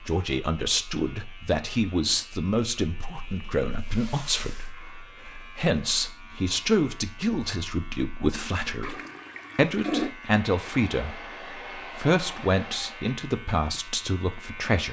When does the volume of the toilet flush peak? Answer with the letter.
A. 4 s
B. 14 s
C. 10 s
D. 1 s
C.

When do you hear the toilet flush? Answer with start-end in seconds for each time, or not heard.
3.1-4.8, 8.8-10.1.